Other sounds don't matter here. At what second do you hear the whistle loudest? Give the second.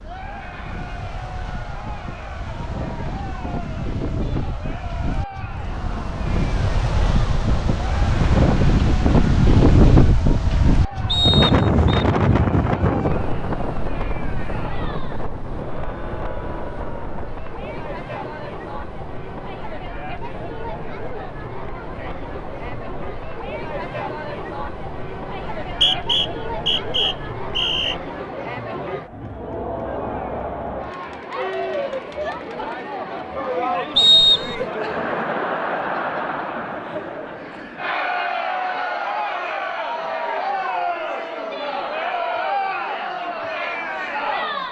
34 s.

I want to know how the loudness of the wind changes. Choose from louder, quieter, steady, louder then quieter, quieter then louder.
louder then quieter.